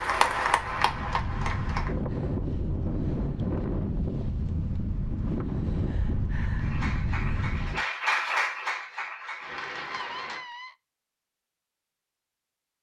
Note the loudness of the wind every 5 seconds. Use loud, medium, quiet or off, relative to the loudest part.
loud, loud, off.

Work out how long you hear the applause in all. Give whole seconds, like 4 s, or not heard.
6 s.